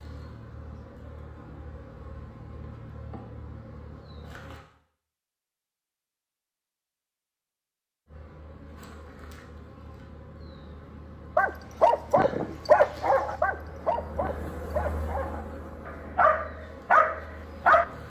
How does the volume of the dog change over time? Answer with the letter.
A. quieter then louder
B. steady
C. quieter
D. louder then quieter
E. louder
A.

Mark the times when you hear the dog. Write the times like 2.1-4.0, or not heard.
11.3-17.9.